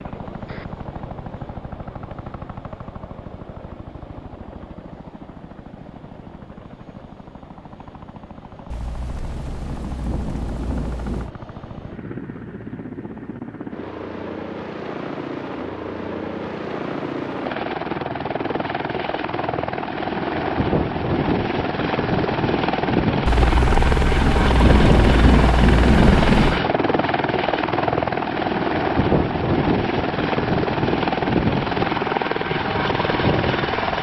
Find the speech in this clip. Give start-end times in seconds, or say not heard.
not heard.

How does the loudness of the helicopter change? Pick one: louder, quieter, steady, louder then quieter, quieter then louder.
louder.